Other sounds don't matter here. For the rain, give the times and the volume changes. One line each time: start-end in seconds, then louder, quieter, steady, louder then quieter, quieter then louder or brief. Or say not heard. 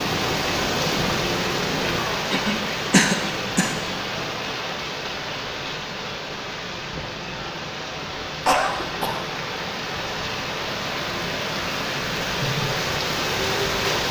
0.0-14.0 quieter then louder.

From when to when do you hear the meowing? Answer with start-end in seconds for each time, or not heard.
not heard.